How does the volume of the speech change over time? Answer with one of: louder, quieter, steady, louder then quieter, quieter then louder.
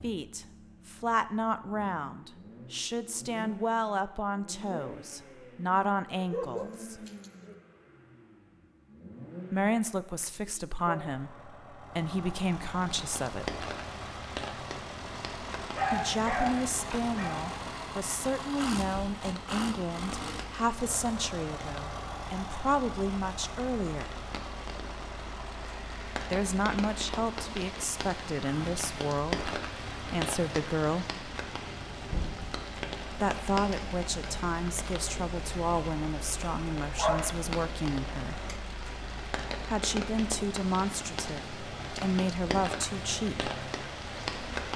steady.